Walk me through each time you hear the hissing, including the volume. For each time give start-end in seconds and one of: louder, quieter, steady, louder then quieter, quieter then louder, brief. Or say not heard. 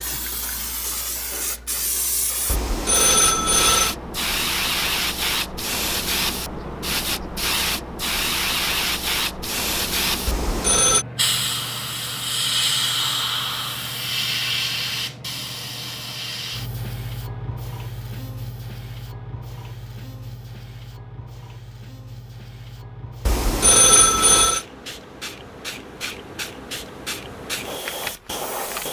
0.0-28.8 quieter.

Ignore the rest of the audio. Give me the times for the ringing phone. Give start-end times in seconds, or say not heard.
2.5-4.0, 10.2-11.1, 23.2-24.6.